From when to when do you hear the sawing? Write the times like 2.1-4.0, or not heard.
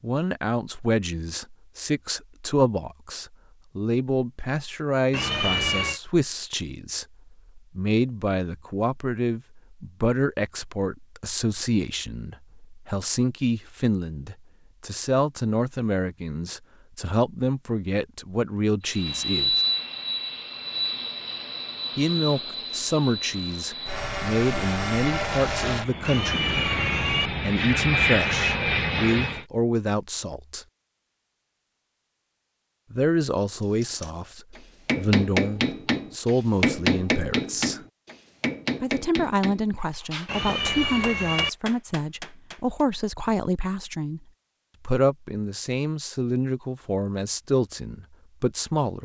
not heard.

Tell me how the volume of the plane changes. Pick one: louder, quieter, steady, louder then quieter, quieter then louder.
quieter then louder.